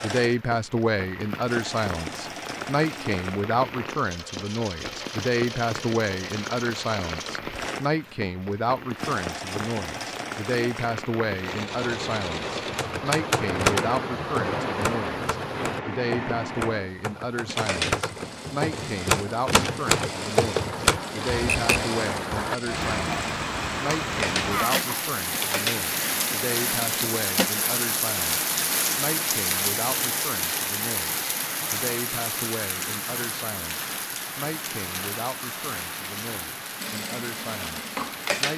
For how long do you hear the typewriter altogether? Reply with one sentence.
The typewriter can be heard for 10 seconds in total.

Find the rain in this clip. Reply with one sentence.
The rain can be heard from 0.2 to 38.5 s.